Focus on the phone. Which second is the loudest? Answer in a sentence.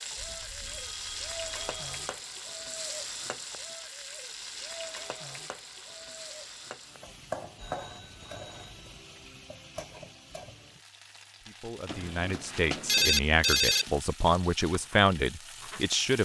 The volume of the phone peaks at 13 seconds.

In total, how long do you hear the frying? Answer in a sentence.
You can hear the frying for 16 seconds altogether.